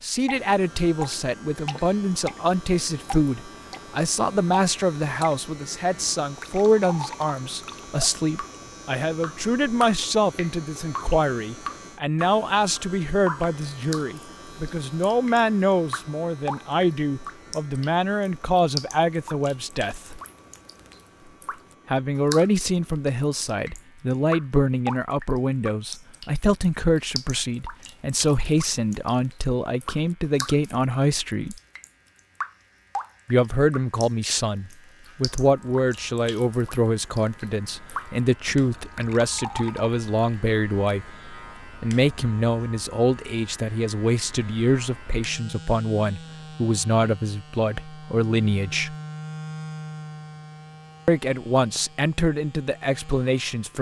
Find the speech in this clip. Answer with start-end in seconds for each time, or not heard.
0.0-20.2, 21.9-31.6, 33.2-41.0, 41.8-49.0, 51.0-53.7.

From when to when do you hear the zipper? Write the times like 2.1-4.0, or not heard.
not heard.